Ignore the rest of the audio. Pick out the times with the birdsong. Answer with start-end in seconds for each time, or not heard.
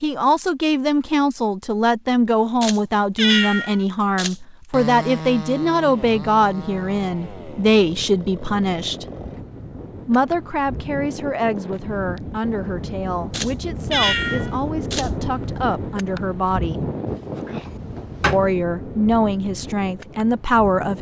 not heard.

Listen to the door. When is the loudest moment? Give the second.
18 s.